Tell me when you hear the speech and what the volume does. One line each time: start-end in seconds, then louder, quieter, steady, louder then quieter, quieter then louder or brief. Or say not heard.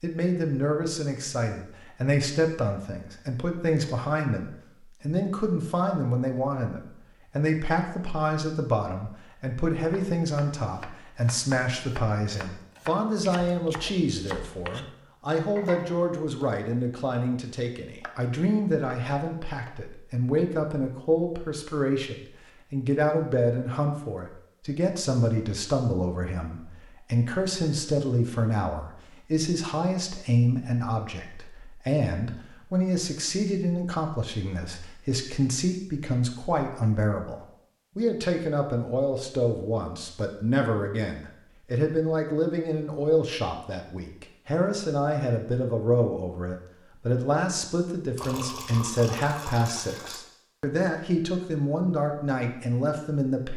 0.0-53.5 steady.